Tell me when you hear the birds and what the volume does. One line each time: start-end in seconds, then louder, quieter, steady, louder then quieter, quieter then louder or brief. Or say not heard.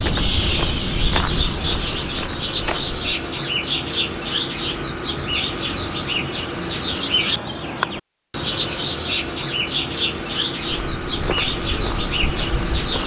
0.0-13.0 steady.